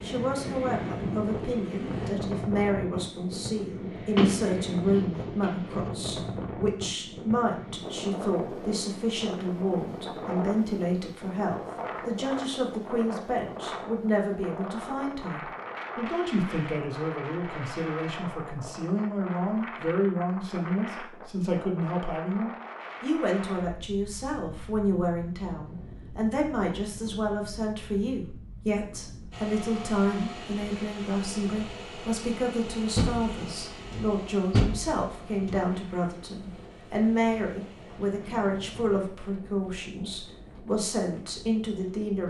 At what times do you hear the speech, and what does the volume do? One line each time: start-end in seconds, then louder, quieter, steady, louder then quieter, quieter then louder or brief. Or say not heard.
0.0-42.2 steady.